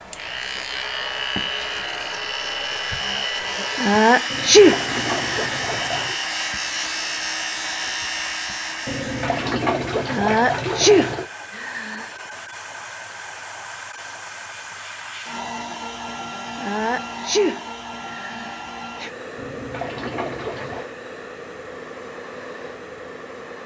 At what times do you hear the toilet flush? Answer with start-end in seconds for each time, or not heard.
4.3-6.2, 8.8-11.3, 19.4-20.9.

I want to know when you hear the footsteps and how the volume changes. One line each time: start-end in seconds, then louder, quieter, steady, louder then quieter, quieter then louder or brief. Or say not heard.
not heard.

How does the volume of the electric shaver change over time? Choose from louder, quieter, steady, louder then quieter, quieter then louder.
steady.